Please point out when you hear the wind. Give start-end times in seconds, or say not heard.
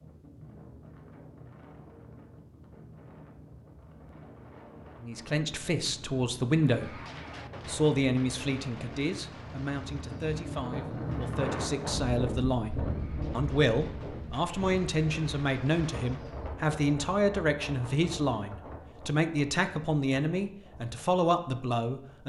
0.0-22.2.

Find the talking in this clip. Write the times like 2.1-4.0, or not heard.
5.0-6.9, 7.7-22.2.